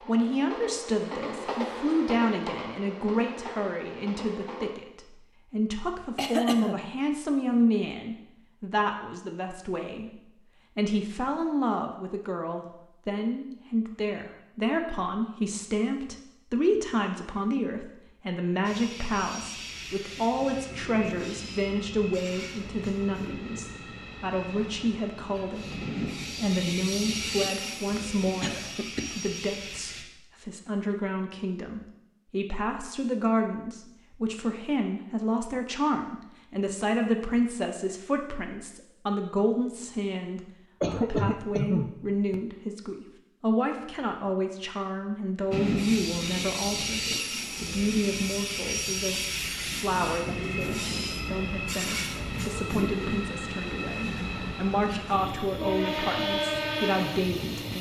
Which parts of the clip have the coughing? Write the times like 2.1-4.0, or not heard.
6.2-6.9, 27.9-29.3, 40.8-42.4.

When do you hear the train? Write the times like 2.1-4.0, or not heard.
0.0-4.7, 18.6-30.1, 45.5-57.7.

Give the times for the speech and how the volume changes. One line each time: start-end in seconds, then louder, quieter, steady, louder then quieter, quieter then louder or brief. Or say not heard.
0.1-57.7 steady.